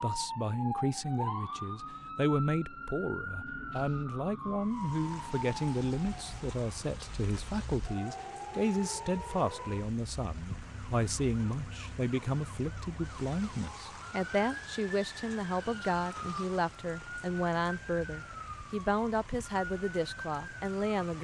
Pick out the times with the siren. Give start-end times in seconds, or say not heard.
0.0-21.2.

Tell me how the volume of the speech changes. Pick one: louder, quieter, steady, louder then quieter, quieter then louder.
steady.